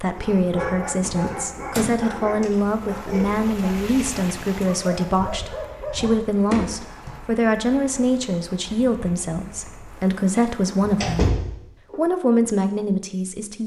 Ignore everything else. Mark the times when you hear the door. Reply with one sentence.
You can hear the door from 1.0 to 1.9 s, from 6.5 to 7.2 s and from 10.2 to 12.0 s.